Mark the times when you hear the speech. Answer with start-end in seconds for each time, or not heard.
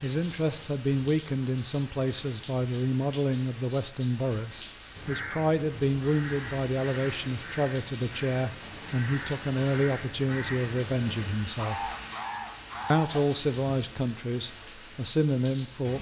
0.0-11.9, 12.9-15.9.